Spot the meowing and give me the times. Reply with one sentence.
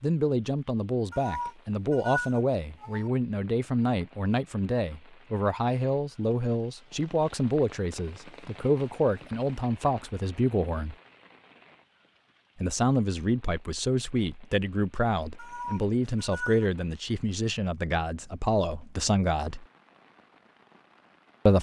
You can hear the meowing from 1.1 to 3.1 s and from 15.3 to 16.6 s.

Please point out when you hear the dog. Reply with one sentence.
The dog can't be heard in this clip.